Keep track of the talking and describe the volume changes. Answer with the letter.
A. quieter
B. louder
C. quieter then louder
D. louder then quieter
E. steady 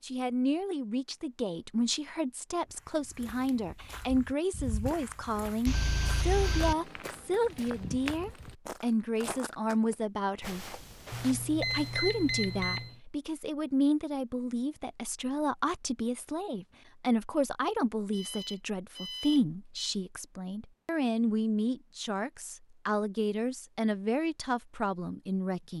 E.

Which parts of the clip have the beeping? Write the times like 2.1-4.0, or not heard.
5.7-6.8, 11.1-12.9, 18.1-19.9.